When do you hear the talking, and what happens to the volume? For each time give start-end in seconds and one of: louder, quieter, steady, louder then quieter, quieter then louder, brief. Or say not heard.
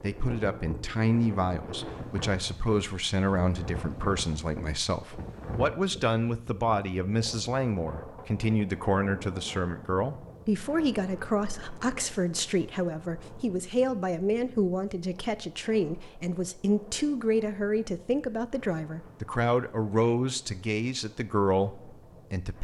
0.0-22.5 steady.